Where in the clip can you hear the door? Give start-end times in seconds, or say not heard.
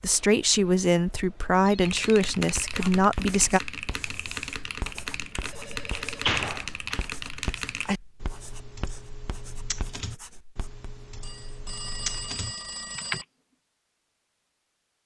5.4-7.0.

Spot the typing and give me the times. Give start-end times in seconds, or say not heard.
1.8-13.2.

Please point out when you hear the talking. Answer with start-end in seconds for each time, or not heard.
0.0-3.6.